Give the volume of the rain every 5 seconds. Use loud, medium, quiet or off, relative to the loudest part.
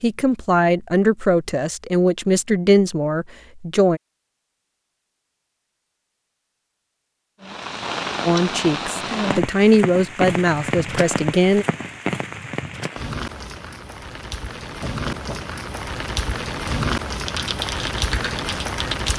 off, loud, loud, loud.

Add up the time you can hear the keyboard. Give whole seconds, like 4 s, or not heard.
2 s.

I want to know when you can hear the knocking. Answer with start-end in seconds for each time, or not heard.
14.7-15.6.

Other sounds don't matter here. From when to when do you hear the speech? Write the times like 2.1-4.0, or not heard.
0.0-4.0, 8.2-11.7.